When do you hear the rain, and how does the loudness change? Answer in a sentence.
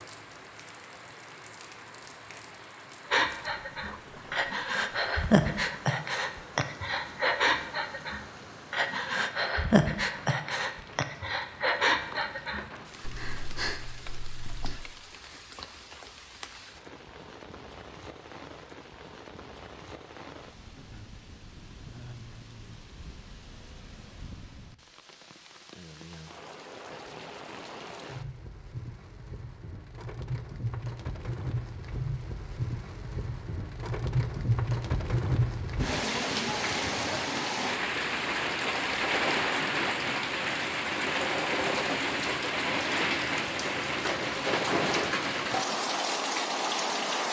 The rain can be heard from 0.0 to 47.2 s, getting louder.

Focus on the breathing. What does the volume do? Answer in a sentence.
The loudness of the breathing goes down.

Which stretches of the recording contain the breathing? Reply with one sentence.
You can hear the breathing from 3.1 to 14.8 s.